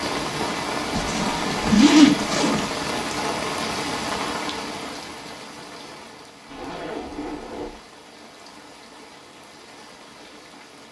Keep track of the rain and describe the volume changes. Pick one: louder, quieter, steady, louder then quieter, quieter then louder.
quieter.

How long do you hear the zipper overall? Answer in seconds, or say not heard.
3 s.